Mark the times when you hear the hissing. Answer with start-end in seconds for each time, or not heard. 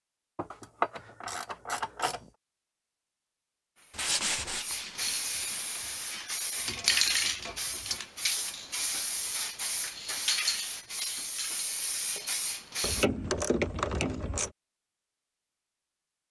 3.8-13.1.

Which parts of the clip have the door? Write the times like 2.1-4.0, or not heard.
not heard.